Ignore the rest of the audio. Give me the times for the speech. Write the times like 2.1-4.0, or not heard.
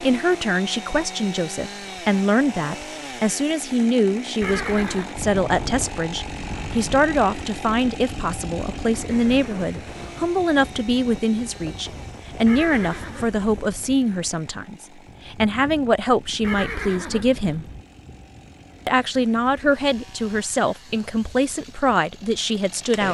0.0-17.6, 18.9-23.0.